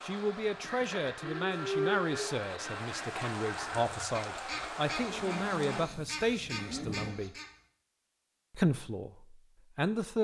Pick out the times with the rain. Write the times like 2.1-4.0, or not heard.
0.0-5.9.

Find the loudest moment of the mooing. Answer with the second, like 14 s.
2 s.